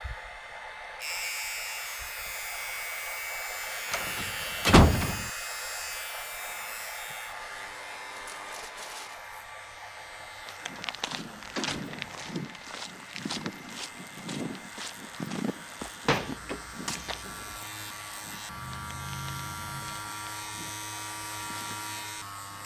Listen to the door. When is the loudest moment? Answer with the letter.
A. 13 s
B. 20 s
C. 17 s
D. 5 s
D.